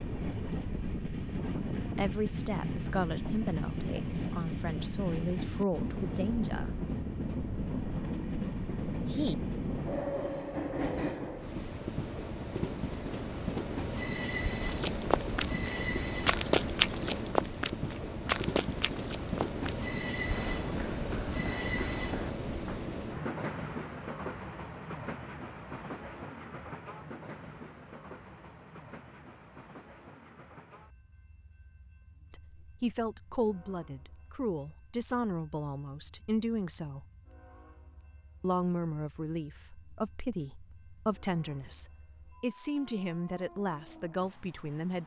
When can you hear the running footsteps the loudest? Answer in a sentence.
The volume of the running footsteps peaks at 17 seconds.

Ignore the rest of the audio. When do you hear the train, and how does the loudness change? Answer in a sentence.
The train can be heard from 0.0 to 45.0 s, getting quieter.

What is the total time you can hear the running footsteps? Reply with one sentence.
You can hear the running footsteps for 8 seconds altogether.